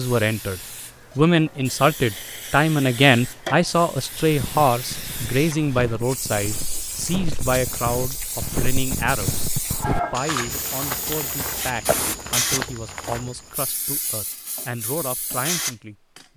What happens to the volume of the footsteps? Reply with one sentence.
The loudness of the footsteps goes up.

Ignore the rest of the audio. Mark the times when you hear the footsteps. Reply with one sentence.
The footsteps can be heard from 4.2 to 13.7 s.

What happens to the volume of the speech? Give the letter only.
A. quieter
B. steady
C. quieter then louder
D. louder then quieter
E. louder
A.